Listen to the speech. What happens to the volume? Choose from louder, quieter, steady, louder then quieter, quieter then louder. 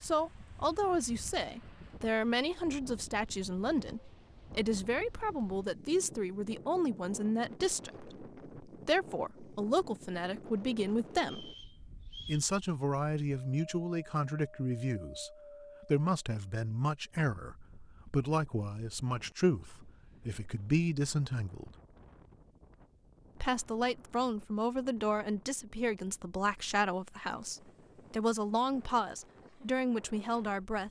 steady.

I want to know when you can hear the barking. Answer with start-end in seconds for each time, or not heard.
not heard.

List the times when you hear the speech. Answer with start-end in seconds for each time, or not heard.
0.0-11.6, 12.2-21.8, 23.4-30.8.